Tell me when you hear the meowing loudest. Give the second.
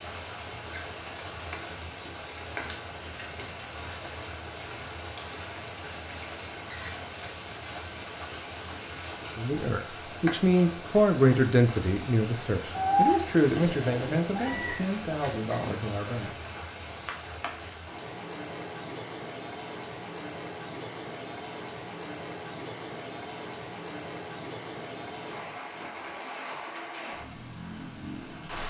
13 s.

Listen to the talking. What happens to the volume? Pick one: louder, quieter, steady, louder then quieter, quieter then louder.
quieter.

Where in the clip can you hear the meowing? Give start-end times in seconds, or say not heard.
12.8-14.8.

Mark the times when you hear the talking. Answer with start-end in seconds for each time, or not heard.
9.3-16.4.